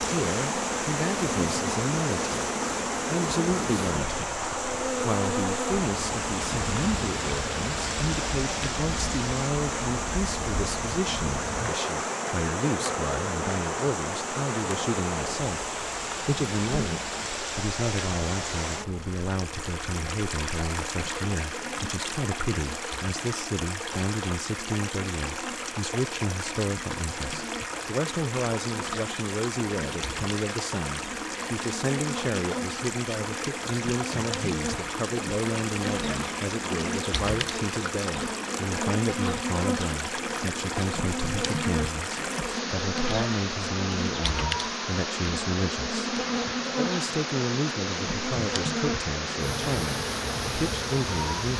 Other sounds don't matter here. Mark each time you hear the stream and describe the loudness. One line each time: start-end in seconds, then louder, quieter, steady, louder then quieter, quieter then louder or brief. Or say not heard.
0.0-51.5 steady.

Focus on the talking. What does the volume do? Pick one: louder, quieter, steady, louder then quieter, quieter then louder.
steady.